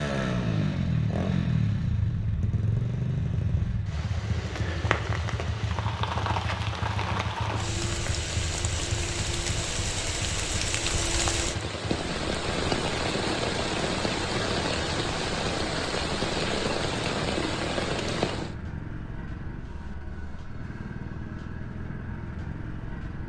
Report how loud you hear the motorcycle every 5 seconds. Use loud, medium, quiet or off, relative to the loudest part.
loud, medium, medium, medium, medium.